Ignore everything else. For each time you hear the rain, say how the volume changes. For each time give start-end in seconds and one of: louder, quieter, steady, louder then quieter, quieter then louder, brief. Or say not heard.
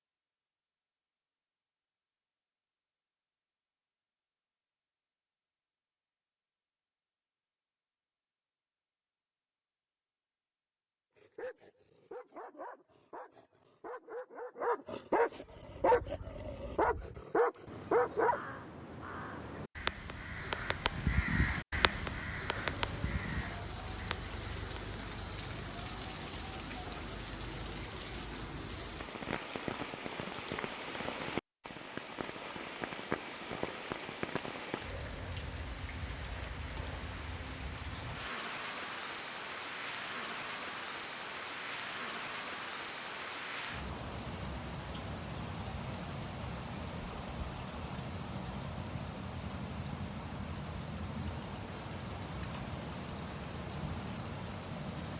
22.5-55.1 steady.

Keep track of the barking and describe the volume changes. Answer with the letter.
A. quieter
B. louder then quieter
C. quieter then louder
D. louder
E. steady
D.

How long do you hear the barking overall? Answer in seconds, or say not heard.
7 s.